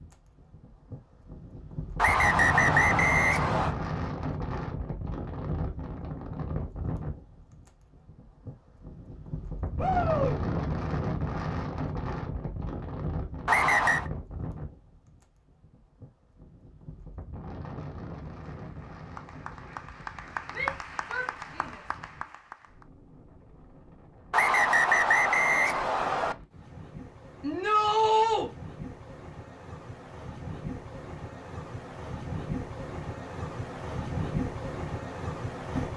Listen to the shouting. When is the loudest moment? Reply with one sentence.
The volume of the shouting peaks at 28 seconds.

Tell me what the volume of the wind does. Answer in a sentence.
The volume of the wind goes down, then up.